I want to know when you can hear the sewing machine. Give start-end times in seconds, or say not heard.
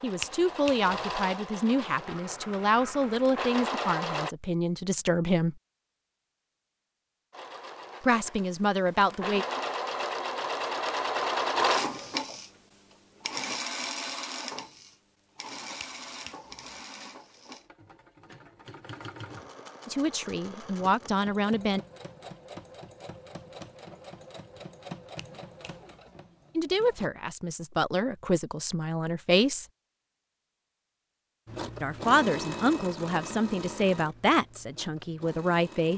0.0-4.3, 7.3-27.1, 31.4-35.9.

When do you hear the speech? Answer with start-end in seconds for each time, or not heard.
0.0-5.5, 8.0-9.4, 19.9-21.8, 26.6-29.6, 31.8-35.9.